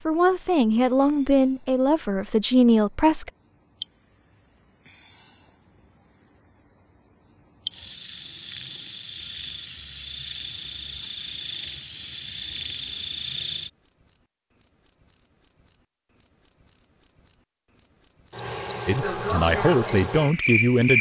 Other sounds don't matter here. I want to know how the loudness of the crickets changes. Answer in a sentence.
The volume of the crickets goes up.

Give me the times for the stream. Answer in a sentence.
The stream can't be heard in this clip.